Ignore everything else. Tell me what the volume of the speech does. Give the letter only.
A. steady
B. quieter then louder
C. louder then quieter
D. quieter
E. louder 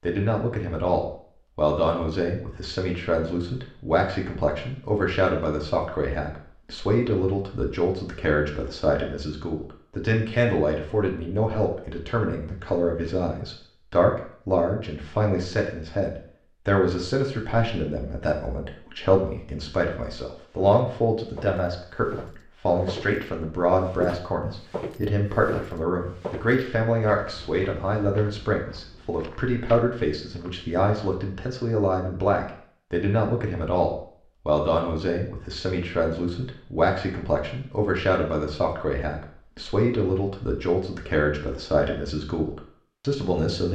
A.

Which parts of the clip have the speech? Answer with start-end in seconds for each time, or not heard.
0.0-43.7.